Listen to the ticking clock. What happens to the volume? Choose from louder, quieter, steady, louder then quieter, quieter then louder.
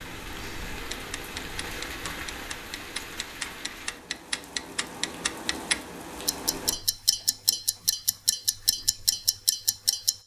louder.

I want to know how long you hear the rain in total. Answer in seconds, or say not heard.
7 s.